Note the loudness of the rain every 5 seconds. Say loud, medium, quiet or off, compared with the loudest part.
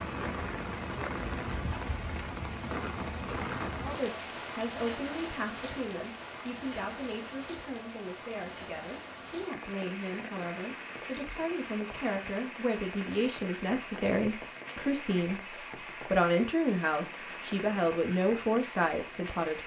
loud, medium, medium, medium.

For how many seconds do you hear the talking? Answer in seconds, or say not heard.
16 s.